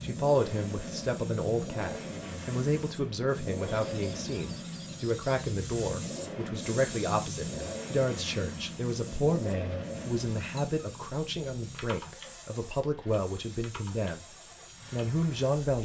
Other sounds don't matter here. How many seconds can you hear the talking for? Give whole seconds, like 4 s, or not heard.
16 s.